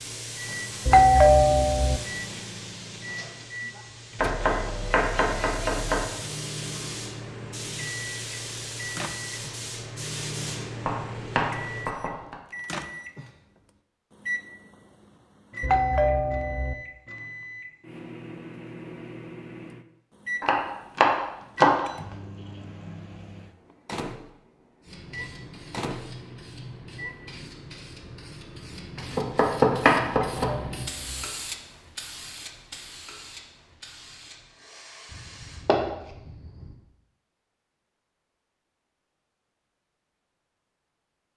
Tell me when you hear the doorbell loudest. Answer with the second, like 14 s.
1 s.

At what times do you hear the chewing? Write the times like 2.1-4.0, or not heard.
not heard.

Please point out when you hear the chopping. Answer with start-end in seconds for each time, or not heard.
4.2-6.0, 10.8-12.3, 20.4-21.8, 29.1-30.5, 35.1-36.7.